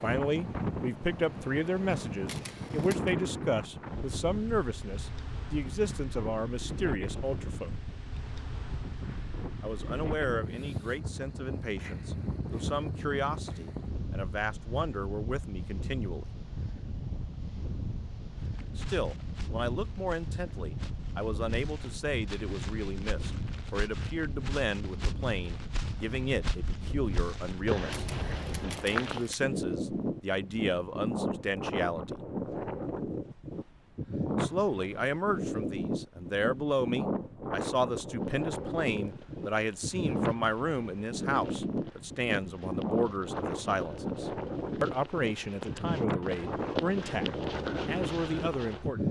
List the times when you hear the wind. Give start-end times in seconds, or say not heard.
0.0-49.0.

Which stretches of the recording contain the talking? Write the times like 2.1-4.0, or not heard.
0.0-7.8, 9.6-16.2, 18.8-32.2, 34.4-49.0.